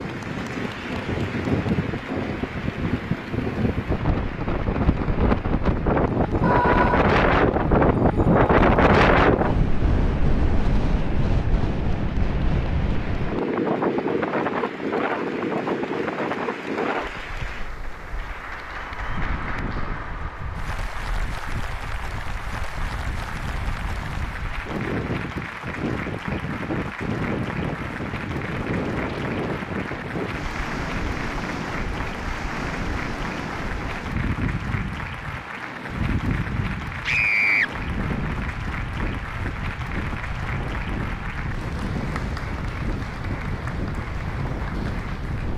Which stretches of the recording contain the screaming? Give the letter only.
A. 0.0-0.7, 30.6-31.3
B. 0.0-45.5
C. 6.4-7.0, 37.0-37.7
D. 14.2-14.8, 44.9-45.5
C.